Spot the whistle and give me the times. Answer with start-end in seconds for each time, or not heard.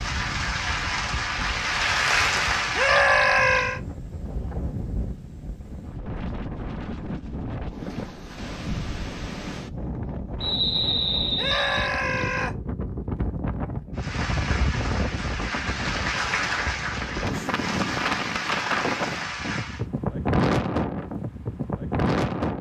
10.4-11.9.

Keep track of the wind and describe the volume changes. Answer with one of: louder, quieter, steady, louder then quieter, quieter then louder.
louder.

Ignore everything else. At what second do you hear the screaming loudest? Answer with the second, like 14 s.
3 s.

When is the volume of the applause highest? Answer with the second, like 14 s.
2 s.